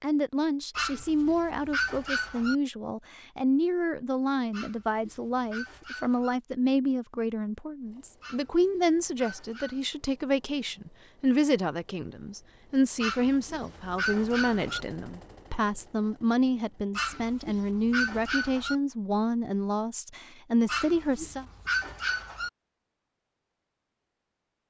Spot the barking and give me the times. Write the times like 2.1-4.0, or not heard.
0.8-2.5, 4.5-6.3, 8.2-9.8, 13.0-14.8, 16.9-18.8, 20.6-22.5.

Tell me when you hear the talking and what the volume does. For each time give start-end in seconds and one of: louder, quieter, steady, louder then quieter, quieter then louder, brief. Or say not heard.
0.0-21.4 steady.